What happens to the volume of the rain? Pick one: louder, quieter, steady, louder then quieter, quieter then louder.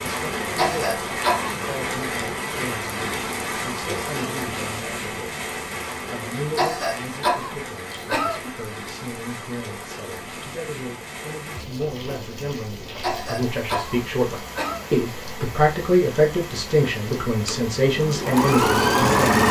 quieter.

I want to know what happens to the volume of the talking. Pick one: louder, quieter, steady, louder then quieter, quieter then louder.
louder.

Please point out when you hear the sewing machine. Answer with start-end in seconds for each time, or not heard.
17.4-19.4.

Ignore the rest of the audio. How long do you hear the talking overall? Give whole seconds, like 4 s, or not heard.
19 s.